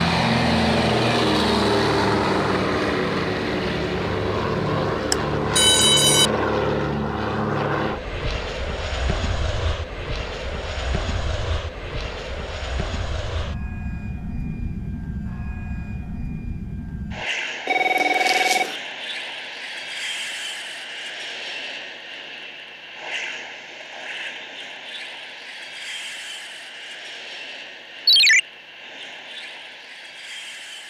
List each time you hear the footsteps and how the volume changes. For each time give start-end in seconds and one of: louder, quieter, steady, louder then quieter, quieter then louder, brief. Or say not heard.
not heard.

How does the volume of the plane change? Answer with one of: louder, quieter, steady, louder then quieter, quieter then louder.
quieter.